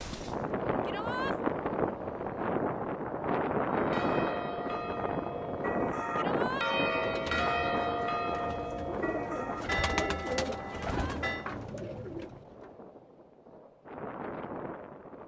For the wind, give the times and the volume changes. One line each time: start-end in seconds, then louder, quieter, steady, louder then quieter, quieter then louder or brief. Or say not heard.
0.0-15.2 quieter.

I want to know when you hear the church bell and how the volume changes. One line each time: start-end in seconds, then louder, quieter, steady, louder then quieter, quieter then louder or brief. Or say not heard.
3.7-11.4 louder then quieter.